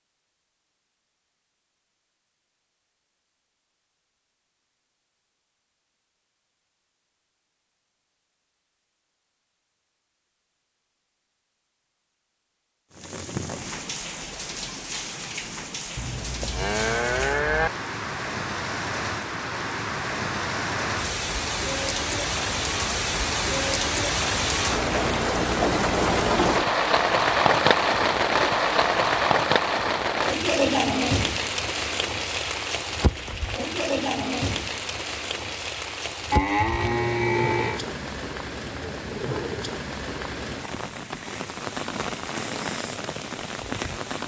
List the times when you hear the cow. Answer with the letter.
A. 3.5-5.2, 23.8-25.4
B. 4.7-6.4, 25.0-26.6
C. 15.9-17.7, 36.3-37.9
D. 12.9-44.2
C.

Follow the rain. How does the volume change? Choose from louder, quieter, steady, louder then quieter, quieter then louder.
louder then quieter.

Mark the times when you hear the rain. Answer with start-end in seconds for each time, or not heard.
12.9-44.2.